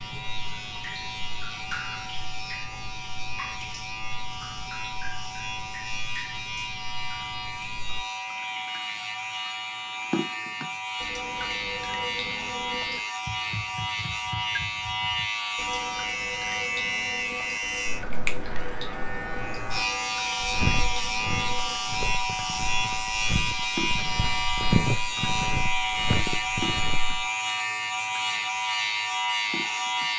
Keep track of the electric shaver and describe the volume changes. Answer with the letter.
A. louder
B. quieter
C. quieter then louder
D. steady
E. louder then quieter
A.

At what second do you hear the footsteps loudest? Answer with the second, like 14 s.
25 s.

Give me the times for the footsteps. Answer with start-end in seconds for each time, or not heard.
20.4-27.2.